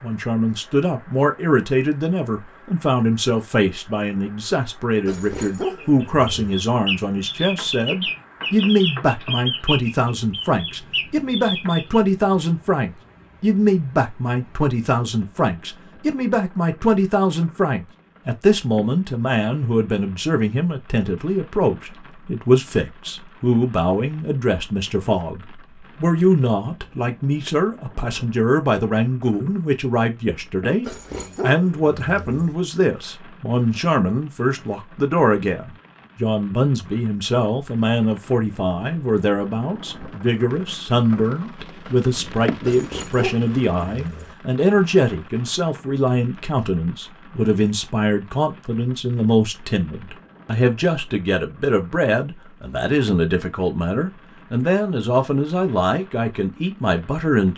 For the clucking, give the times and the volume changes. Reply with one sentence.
You can hear the clucking from 5.6 to 12.0 s, at a steady volume.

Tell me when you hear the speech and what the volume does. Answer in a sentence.
The speech can be heard from 0.0 to 57.5 s, at a steady volume.